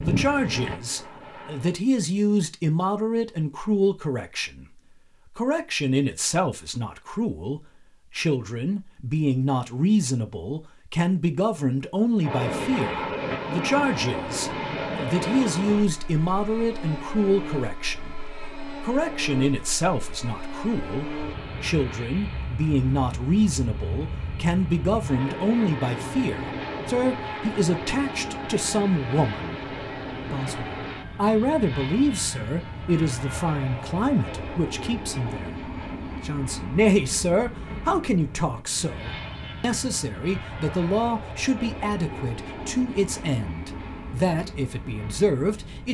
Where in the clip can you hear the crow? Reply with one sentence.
The crow can't be heard in this clip.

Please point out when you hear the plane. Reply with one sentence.
The plane can be heard from 0.0 to 1.8 s and from 12.2 to 45.8 s.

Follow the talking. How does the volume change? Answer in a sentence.
The volume of the talking stays about the same.